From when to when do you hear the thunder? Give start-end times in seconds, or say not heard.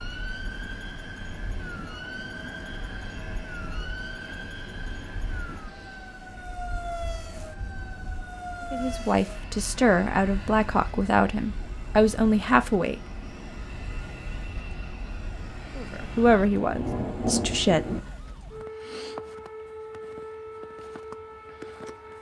16.2-18.0.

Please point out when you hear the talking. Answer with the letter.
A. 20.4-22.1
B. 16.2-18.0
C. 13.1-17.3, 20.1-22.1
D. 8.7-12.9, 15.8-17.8
D.